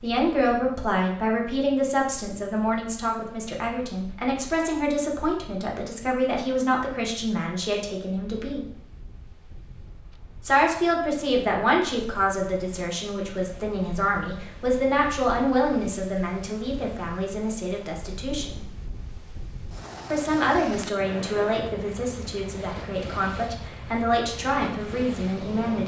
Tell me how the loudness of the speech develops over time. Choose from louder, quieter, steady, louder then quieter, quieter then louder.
steady.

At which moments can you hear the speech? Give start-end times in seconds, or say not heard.
0.0-8.7, 10.4-18.6, 20.1-25.8.